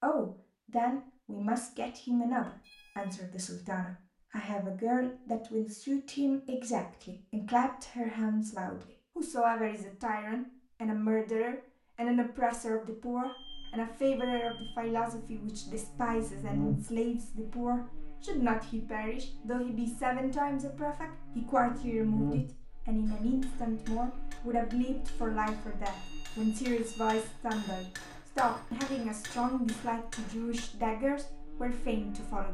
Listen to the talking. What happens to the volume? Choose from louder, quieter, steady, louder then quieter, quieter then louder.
steady.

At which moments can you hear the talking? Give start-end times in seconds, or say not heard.
0.0-32.4.